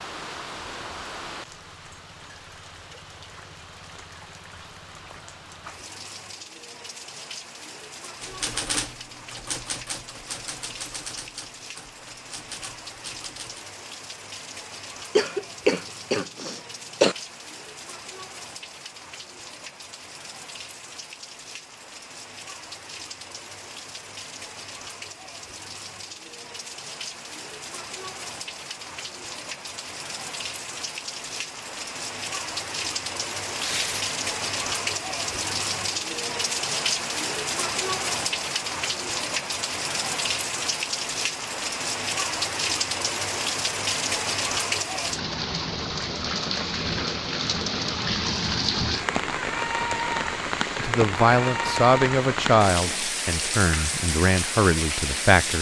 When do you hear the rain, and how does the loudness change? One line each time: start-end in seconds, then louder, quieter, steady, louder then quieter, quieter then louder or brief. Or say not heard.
0.0-55.5 louder.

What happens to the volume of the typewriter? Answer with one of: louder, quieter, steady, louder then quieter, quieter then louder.
quieter then louder.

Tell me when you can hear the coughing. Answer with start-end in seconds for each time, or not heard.
15.2-17.1.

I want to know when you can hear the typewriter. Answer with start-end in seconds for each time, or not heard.
8.2-13.7.